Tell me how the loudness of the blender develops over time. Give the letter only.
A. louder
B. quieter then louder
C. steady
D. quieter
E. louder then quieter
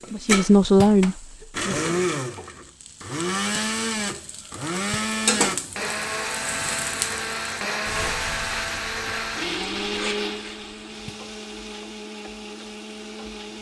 D.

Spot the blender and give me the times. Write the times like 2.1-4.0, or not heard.
0.0-13.5.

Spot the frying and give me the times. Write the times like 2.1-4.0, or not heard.
0.0-13.5.